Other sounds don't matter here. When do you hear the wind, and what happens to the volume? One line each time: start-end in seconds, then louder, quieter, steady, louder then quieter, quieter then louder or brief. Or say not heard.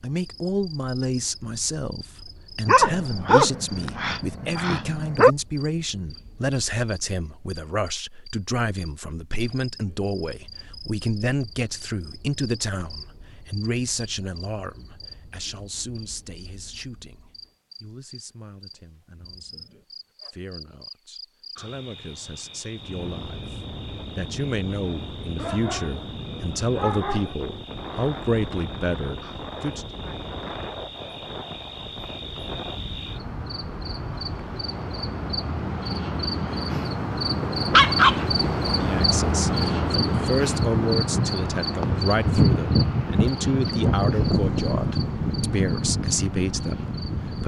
22.8-47.4 louder.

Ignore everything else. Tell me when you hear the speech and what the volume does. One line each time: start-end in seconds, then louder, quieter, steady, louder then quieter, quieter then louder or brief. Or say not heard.
0.0-29.9 quieter then louder
38.6-47.4 steady.